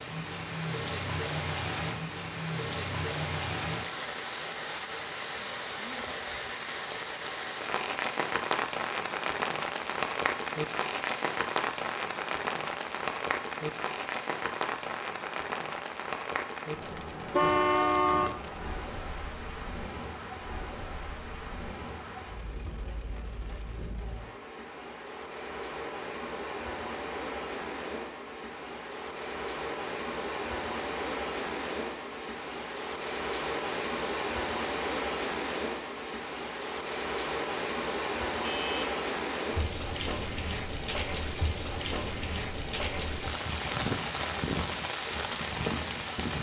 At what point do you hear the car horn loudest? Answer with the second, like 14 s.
18 s.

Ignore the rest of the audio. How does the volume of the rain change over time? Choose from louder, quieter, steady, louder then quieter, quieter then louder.
quieter then louder.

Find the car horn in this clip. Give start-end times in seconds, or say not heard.
17.3-18.4, 38.4-38.9.